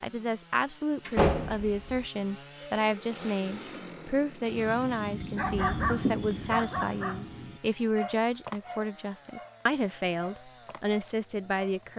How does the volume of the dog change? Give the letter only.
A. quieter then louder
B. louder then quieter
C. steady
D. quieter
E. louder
D.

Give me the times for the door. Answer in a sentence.
The door can be heard from 1.1 to 2.0 s.